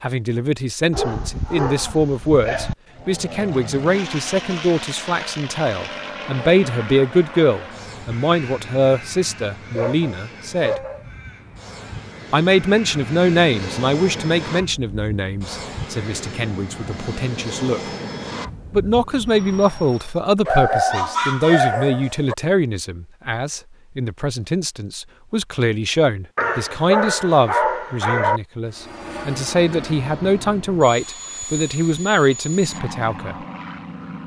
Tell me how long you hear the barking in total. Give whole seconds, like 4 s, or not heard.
7 s.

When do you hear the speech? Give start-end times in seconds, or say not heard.
0.0-10.8, 12.3-17.9, 18.7-33.4.